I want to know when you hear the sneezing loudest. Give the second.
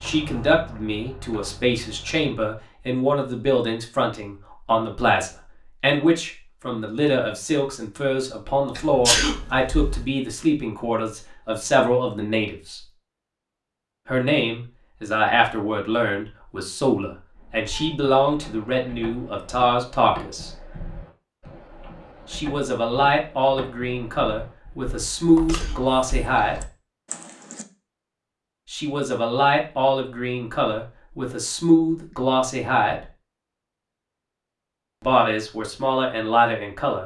9 s.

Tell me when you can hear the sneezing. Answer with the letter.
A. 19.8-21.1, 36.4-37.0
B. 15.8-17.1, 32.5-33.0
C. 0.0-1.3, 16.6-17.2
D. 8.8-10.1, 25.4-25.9
D.